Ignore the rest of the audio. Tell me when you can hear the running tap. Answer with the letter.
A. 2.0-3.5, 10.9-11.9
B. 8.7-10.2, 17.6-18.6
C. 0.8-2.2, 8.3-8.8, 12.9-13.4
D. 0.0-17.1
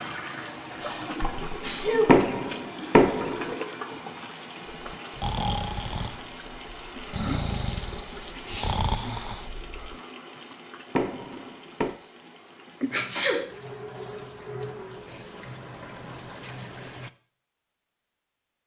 D.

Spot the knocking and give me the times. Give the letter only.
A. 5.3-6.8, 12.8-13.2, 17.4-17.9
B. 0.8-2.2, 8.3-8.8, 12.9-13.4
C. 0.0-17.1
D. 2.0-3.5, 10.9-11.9
D.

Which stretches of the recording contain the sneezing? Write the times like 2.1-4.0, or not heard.
0.8-2.2, 8.3-8.8, 12.9-13.4.